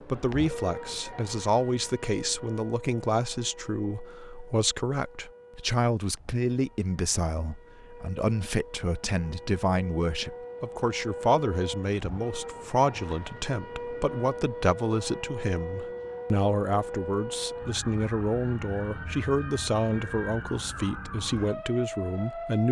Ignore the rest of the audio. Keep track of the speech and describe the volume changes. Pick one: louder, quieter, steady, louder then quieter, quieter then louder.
steady.